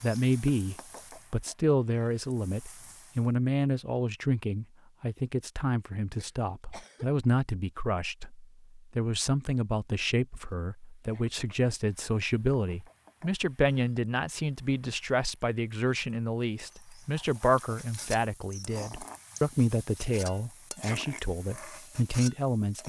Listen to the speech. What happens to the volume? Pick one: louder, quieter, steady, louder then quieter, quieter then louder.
steady.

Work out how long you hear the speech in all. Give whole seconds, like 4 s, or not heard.
23 s.